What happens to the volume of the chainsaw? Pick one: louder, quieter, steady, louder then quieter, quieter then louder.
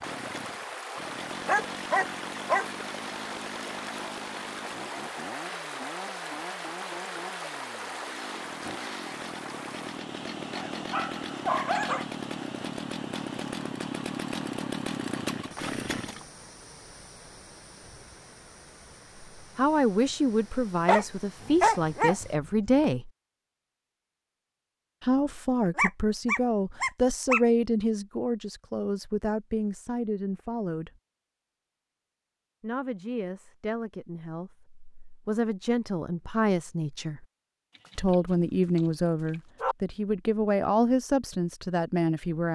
louder.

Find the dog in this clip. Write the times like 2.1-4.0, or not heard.
1.4-2.7, 10.6-12.1, 20.9-22.9, 25.8-27.4, 38.8-39.8.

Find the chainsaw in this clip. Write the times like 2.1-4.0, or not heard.
0.0-16.2.